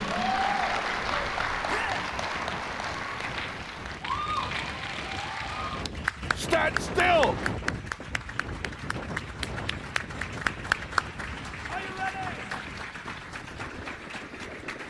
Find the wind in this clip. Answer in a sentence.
The wind can be heard from 0.0 to 14.8 s.